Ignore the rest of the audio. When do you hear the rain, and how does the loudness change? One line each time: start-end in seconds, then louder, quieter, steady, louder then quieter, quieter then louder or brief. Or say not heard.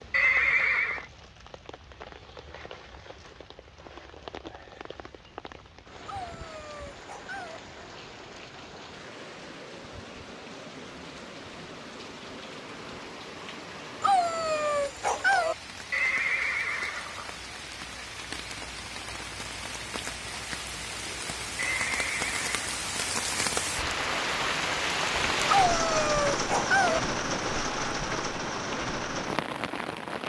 0.0-30.2 louder.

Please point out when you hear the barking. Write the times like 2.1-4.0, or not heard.
6.0-7.6, 14.0-15.6, 25.4-27.0.